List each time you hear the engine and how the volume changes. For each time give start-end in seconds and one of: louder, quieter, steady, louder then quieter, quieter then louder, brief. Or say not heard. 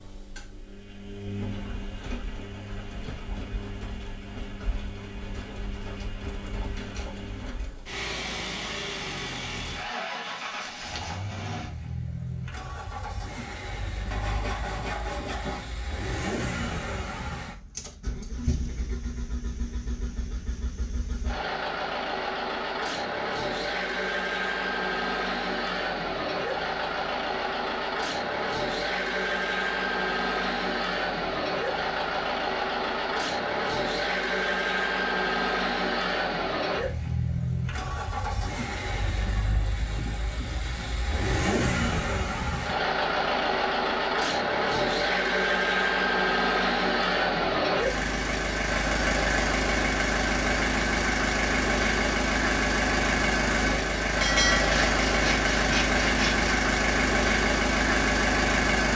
0.0-58.9 louder.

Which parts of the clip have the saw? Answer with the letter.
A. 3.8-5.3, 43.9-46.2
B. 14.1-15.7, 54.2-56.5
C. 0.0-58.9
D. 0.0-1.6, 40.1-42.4
B.